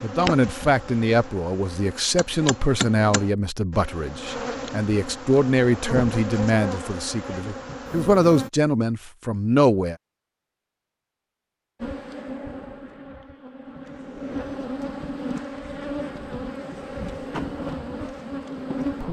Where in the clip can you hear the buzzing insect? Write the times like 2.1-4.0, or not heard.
0.0-8.5, 11.8-19.0.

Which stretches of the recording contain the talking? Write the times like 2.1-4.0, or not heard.
0.0-9.9.